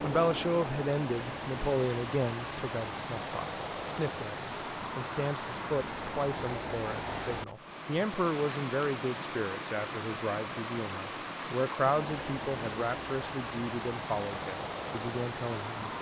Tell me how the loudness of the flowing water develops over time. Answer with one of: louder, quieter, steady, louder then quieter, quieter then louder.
steady.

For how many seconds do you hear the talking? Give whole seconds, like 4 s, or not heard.
16 s.